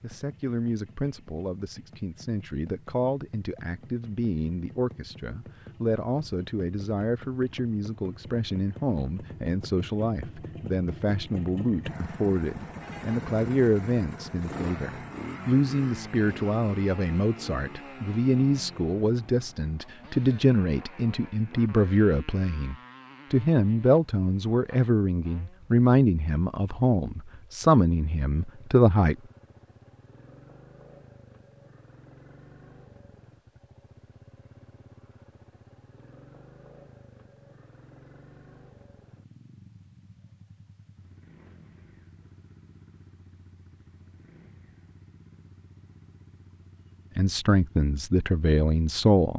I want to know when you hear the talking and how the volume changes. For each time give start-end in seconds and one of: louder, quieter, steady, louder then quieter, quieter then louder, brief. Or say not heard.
0.0-29.1 louder
47.1-49.3 brief.